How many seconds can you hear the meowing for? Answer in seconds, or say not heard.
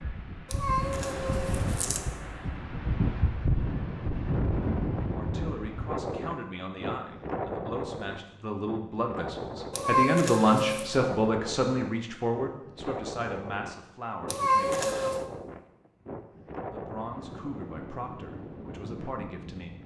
4 s.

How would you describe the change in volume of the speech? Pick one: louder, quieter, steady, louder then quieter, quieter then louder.
louder then quieter.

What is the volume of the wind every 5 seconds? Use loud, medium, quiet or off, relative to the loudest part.
loud, loud, medium, medium.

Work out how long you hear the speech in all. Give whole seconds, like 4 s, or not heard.
13 s.